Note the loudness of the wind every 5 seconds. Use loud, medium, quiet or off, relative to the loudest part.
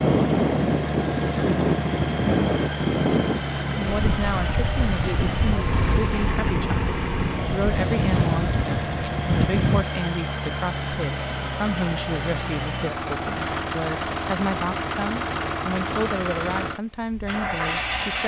loud, loud, off, off.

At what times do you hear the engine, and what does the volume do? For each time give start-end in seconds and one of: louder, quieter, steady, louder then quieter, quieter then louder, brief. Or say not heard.
0.0-18.2 steady.